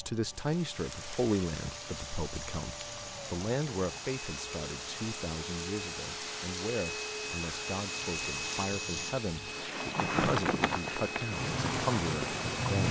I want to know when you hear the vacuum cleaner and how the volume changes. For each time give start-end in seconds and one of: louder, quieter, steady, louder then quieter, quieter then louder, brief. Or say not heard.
0.0-12.8 louder.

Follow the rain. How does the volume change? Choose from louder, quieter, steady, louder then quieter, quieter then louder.
louder.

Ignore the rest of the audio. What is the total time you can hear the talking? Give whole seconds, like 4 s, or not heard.
13 s.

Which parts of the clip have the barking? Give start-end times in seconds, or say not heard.
not heard.